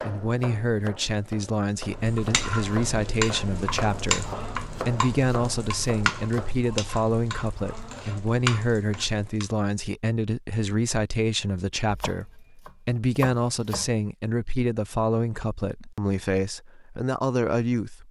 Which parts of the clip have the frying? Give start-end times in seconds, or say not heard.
1.9-9.4.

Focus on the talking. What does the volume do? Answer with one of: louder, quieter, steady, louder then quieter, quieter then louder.
steady.